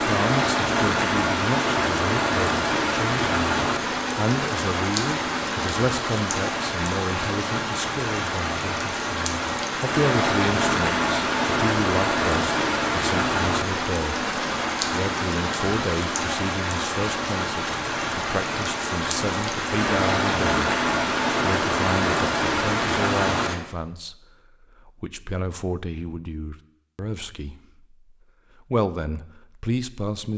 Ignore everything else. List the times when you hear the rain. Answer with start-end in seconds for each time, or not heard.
0.0-23.6.